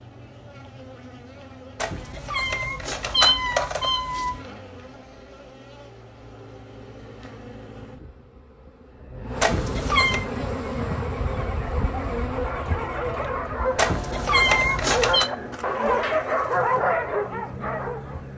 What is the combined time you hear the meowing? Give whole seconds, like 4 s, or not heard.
5 s.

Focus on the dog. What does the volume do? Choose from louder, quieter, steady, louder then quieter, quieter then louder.
louder.